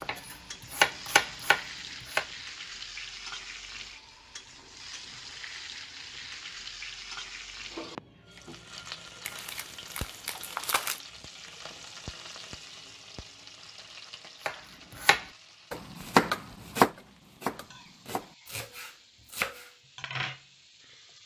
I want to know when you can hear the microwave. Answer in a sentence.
The microwave can't be heard in this clip.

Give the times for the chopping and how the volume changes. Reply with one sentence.
You can hear the chopping briefly from 0.0 to 2.2 s; and from 14.4 to 19.7 s, getting louder then quieter.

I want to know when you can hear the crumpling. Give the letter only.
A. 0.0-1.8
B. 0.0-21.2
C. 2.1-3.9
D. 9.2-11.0
D.